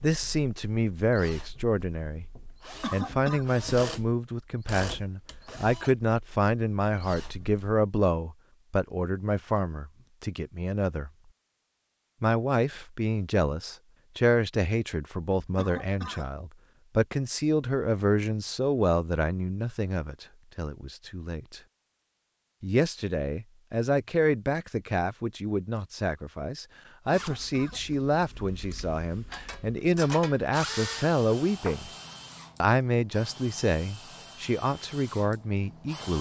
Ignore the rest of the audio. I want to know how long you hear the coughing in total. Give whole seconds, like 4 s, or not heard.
2 s.